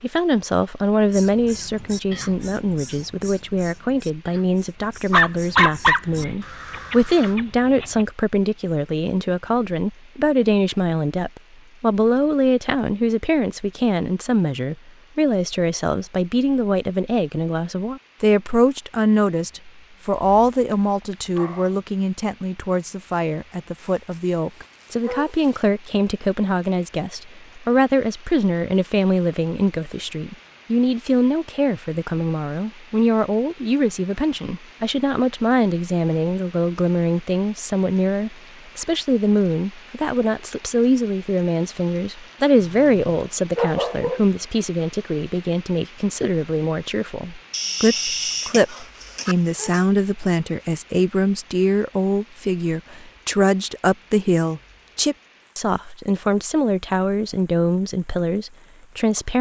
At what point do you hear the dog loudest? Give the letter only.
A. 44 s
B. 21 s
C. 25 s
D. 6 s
D.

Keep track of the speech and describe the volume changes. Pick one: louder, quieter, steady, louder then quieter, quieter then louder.
steady.